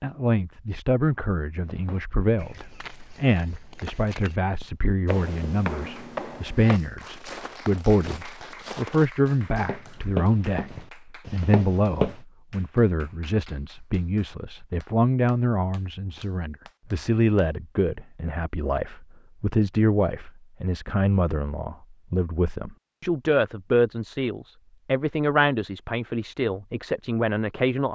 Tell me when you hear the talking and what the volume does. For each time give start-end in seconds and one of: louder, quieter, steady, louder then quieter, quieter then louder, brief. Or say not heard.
0.0-27.9 steady.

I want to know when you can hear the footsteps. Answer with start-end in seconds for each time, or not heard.
1.6-12.2.